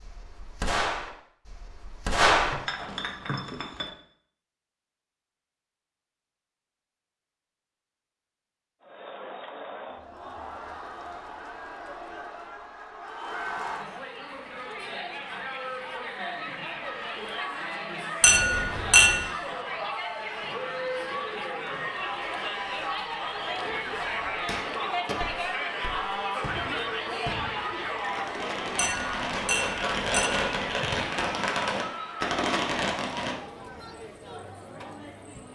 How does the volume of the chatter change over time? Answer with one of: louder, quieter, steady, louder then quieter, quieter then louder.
louder then quieter.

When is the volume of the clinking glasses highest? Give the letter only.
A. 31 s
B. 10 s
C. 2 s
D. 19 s
D.